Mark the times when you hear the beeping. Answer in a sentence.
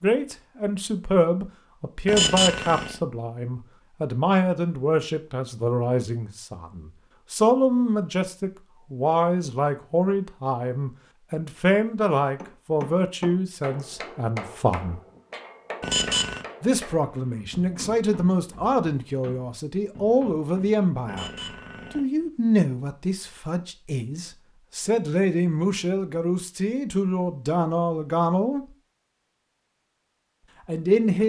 The beeping can be heard from 2.0 to 3.0 s, from 15.8 to 16.4 s and from 21.1 to 22.1 s.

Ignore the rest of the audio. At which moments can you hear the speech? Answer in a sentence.
You can hear the speech from 0.0 to 15.0 s, from 16.6 to 21.3 s, from 21.9 to 28.6 s and from 30.6 to 31.2 s.